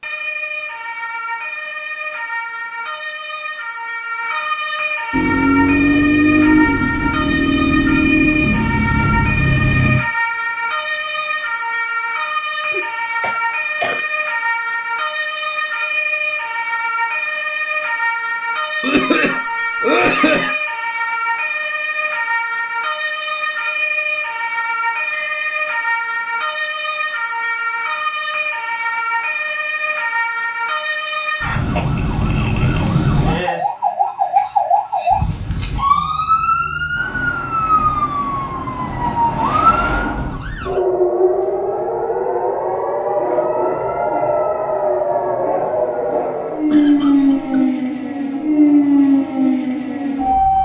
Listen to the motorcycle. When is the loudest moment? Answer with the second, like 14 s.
6 s.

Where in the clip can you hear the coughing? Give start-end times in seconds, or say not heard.
12.7-14.1, 18.8-20.6, 46.7-47.5.